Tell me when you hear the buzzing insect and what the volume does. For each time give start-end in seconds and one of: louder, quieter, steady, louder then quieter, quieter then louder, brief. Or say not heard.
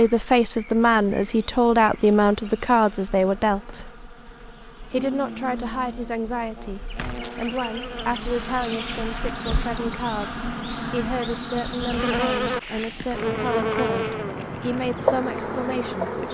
0.0-16.3 louder.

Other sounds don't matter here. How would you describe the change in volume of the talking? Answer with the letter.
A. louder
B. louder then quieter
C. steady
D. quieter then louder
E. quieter
E.